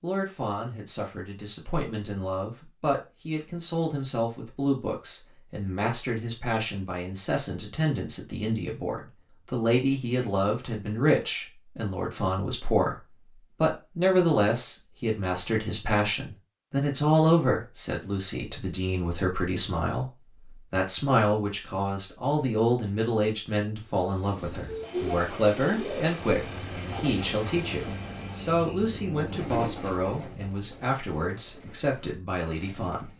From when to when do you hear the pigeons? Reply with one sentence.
The pigeons can be heard from 24.9 to 33.1 s.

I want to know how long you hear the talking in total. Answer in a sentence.
You can hear the talking for 33 seconds altogether.